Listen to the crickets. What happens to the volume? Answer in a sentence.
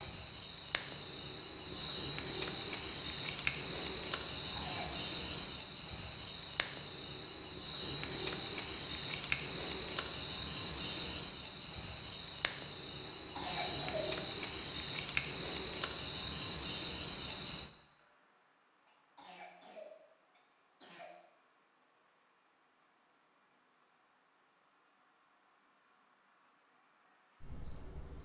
The volume of the crickets goes down.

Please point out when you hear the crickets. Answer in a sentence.
The crickets can be heard from 0.0 to 28.2 s.